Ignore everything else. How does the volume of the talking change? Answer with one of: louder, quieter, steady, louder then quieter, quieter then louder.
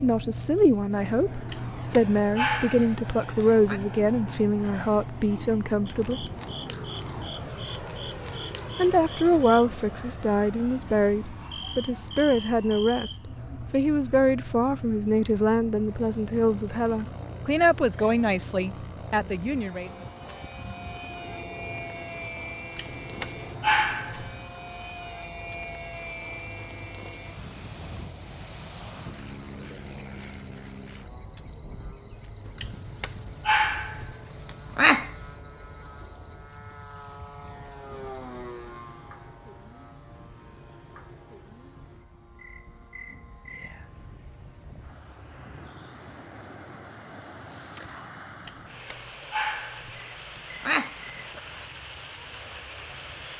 steady.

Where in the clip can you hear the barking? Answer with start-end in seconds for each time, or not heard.
1.5-3.8, 22.8-24.4, 32.6-35.1, 48.5-51.4.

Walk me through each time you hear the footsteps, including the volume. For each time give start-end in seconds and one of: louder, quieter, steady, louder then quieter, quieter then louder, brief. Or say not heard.
not heard.